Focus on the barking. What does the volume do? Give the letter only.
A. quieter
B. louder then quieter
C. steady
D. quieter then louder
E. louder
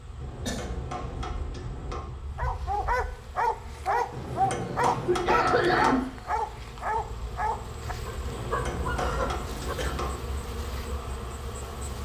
A.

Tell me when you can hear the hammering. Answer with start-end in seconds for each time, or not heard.
0.1-2.1, 4.1-6.0, 8.2-10.2.